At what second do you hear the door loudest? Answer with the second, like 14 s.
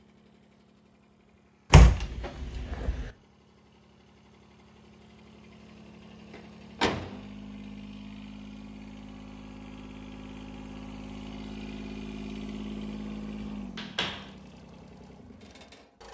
2 s.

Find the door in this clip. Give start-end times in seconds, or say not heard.
1.7-3.1, 6.3-7.2, 13.4-14.3.